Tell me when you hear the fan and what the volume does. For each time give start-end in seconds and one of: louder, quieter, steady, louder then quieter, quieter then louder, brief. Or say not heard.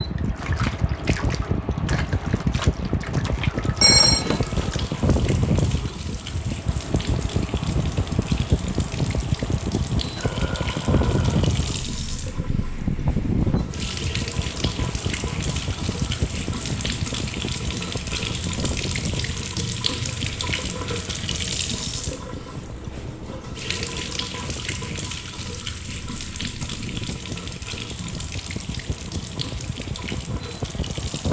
0.0-31.2 quieter.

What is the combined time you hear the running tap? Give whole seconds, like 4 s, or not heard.
31 s.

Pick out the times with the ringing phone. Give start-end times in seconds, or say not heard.
3.5-4.8.